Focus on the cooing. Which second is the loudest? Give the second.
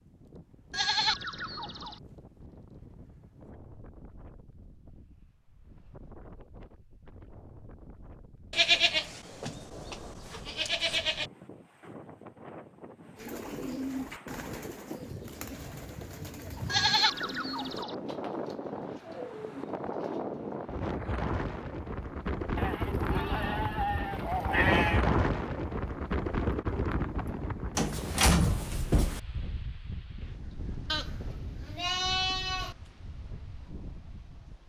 14 s.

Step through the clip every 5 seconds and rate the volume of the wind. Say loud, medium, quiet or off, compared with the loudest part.
quiet, quiet, quiet, medium, loud, loud, quiet.